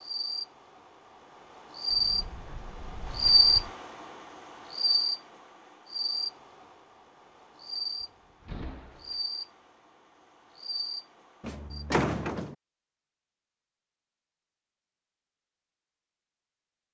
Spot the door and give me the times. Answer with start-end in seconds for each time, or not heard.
1.9-3.8, 8.0-9.2, 11.4-12.6.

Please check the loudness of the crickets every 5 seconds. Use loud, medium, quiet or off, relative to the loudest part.
loud, medium, quiet, off.